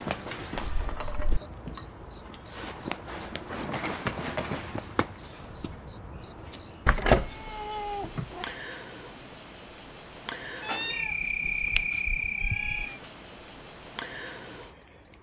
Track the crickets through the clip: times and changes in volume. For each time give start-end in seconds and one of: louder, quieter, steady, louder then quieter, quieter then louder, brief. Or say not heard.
0.0-15.1 steady.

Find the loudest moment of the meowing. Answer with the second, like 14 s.
7 s.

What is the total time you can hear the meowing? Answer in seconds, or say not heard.
5 s.